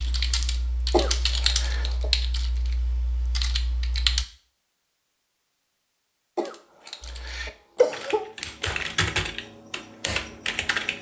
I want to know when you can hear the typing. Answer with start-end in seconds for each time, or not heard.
0.0-4.2, 7.0-10.9.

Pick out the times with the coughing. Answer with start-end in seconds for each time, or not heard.
0.9-2.1, 6.3-8.2.